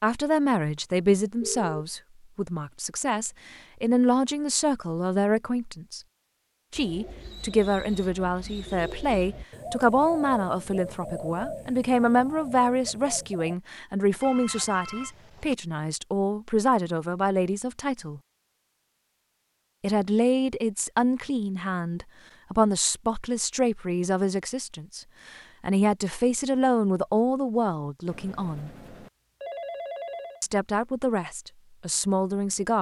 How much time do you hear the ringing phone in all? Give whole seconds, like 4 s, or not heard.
4 s.